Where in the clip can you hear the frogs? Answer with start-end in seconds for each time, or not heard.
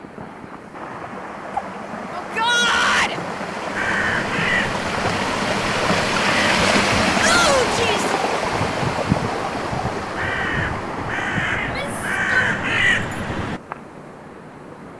not heard.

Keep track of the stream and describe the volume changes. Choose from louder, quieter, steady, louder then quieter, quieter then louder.
louder then quieter.